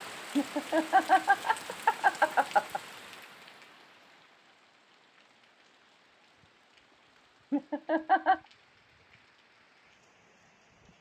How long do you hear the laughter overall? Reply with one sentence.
You can hear the laughter for 3 seconds altogether.